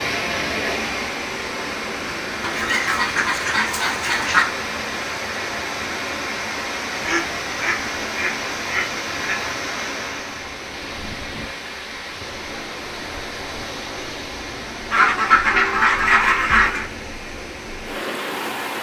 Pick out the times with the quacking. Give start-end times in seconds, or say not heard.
2.4-4.5, 7.0-9.5, 14.9-16.9.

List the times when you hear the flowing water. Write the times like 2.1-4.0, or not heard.
0.0-18.7.